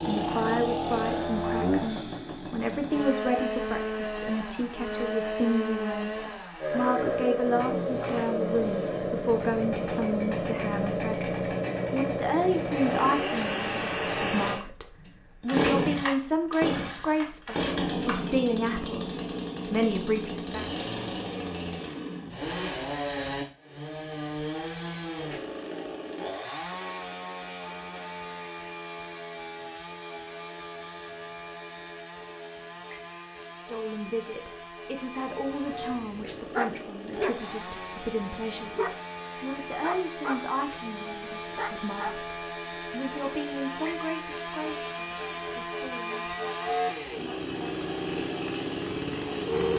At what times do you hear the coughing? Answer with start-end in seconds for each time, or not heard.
not heard.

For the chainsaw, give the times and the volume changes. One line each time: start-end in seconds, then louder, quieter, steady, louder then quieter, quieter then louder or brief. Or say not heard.
0.0-49.7 quieter then louder.